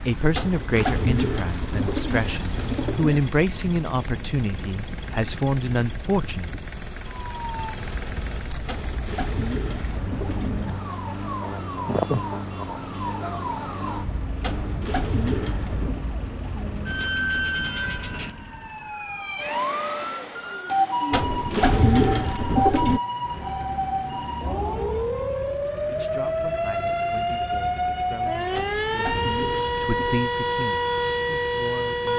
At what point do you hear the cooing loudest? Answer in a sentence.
The loudest moment of the cooing is at 22 seconds.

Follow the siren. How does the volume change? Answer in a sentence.
The loudness of the siren goes up.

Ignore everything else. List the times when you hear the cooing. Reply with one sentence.
You can hear the cooing from 0.3 to 3.2 s, from 8.7 to 10.8 s, from 14.4 to 16.0 s, from 21.1 to 23.0 s and from 28.5 to 30.2 s.